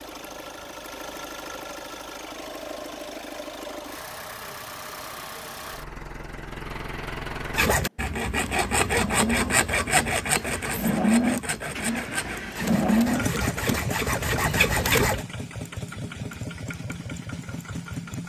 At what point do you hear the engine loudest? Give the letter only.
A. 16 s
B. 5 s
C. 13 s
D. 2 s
C.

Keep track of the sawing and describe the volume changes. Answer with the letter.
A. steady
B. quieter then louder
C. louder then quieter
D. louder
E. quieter
B.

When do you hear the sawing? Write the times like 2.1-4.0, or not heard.
7.5-15.2.